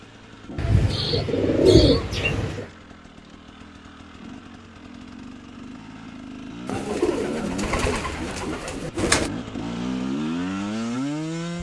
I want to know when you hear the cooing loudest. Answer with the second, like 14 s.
2 s.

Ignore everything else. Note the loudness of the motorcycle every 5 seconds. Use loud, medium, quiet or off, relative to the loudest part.
quiet, medium, loud.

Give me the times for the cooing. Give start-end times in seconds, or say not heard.
0.6-2.6, 6.7-9.3.